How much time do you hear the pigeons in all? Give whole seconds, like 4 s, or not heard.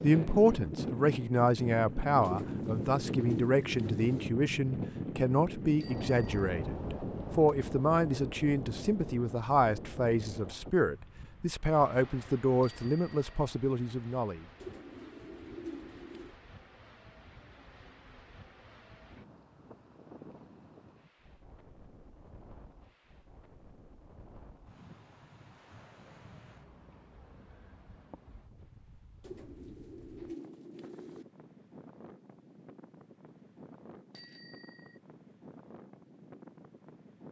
6 s.